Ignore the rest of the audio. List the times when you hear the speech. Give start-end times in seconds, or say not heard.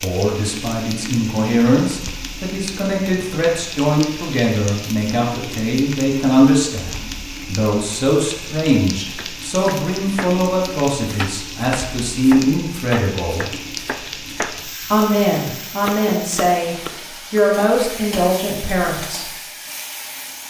0.0-13.5, 14.9-19.3.